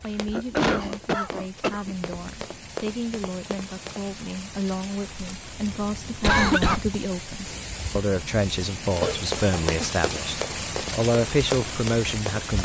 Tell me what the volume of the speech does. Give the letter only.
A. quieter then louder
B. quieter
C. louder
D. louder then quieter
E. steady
C.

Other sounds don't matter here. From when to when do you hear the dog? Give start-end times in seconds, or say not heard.
not heard.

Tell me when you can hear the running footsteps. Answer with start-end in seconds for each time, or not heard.
0.0-4.2, 9.2-12.6.